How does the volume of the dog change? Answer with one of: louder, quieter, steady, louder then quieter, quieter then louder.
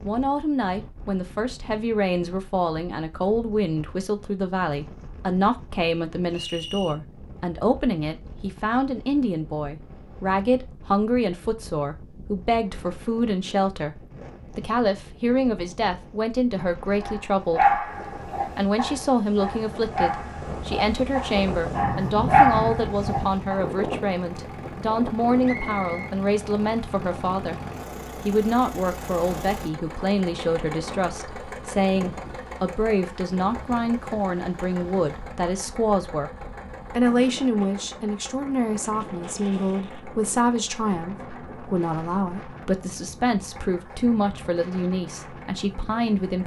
quieter then louder.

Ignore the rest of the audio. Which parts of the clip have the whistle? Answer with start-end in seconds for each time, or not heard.
6.3-7.0, 25.4-26.1.